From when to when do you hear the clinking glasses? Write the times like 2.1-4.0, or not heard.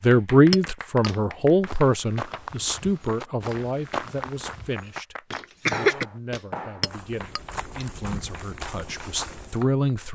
0.5-1.1, 6.8-7.8.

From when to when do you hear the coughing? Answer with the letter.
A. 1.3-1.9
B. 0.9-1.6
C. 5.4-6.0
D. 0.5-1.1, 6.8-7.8
C.